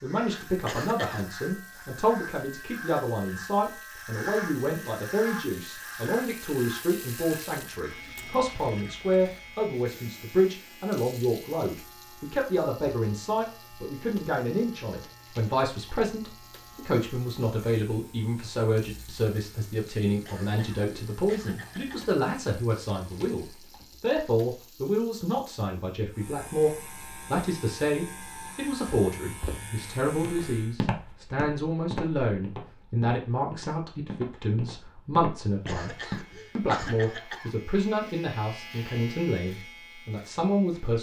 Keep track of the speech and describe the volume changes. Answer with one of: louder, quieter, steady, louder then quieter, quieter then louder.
steady.